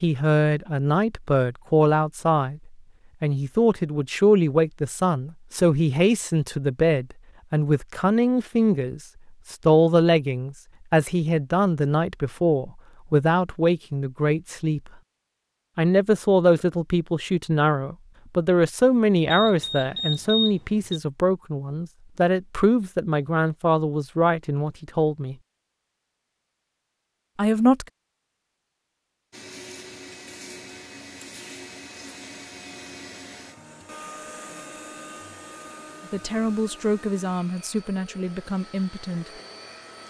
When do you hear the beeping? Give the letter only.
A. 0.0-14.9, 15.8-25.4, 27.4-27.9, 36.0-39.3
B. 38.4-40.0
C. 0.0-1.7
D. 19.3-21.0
D.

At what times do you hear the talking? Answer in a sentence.
You can hear the talking from 0.0 to 14.9 s, from 15.8 to 25.4 s, from 27.4 to 27.9 s and from 36.0 to 39.3 s.